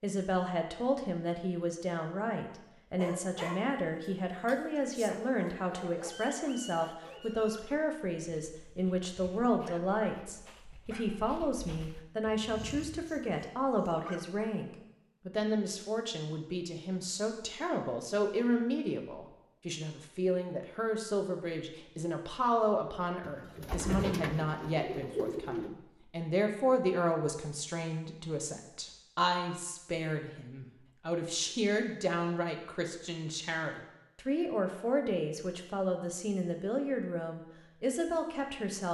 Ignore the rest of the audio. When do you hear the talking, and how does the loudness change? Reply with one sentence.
You can hear the talking from 0.0 to 38.8 s, at a steady volume.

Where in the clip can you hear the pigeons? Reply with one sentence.
The pigeons can be heard from 23.2 to 25.7 s.